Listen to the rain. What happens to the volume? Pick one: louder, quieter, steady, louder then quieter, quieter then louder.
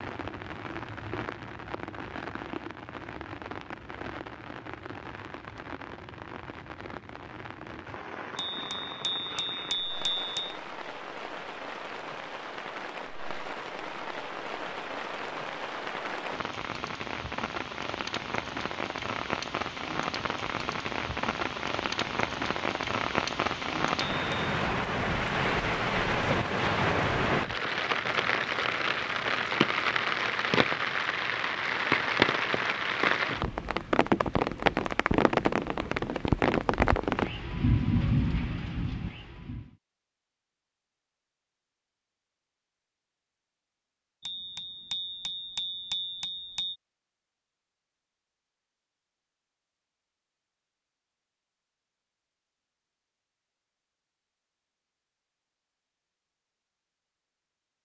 louder.